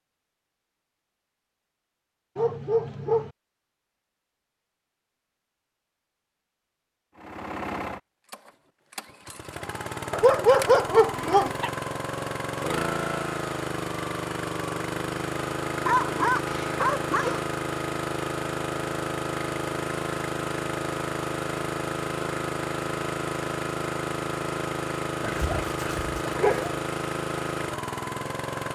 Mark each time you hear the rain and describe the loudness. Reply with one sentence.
The rain can't be heard in this clip.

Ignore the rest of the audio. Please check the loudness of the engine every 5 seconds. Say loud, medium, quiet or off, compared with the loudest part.
off, medium, loud, loud, loud, loud.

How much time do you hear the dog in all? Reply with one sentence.
The dog can be heard for 6 seconds in total.